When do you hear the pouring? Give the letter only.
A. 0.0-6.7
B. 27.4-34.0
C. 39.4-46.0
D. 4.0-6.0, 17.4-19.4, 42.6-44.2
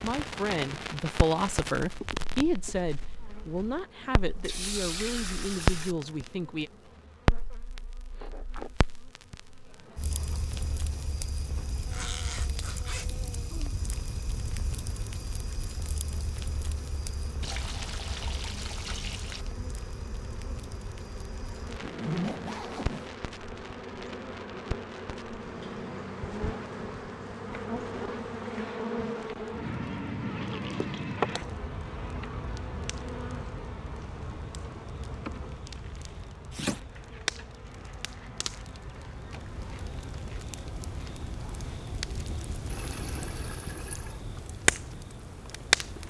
D.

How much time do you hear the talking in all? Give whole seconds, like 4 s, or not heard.
7 s.